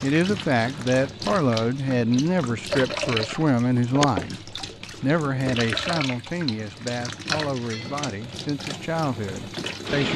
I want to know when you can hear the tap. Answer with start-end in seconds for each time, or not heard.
0.0-10.1.